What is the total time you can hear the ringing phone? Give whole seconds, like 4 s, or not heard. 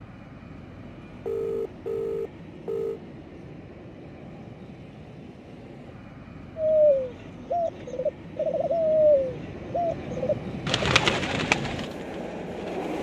2 s.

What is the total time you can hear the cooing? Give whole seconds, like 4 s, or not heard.
6 s.